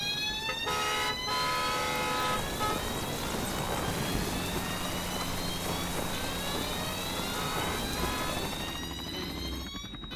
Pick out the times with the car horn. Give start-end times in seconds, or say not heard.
0.5-2.8, 7.2-8.3.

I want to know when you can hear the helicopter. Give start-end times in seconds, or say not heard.
0.0-10.1.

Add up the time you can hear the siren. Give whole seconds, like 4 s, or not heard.
10 s.